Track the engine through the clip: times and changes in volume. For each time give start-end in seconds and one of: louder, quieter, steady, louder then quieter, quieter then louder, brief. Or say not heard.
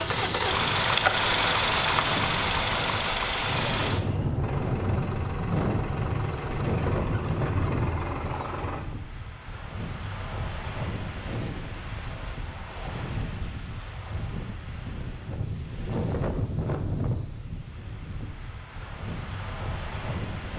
0.0-8.8 quieter.